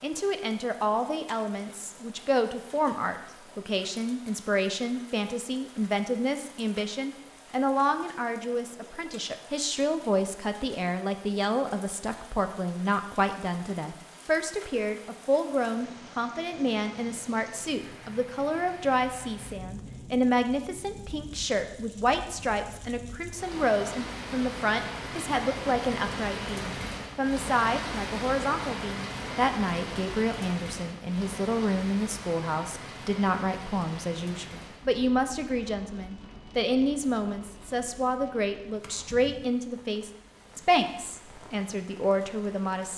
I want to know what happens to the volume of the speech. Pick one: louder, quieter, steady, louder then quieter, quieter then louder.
steady.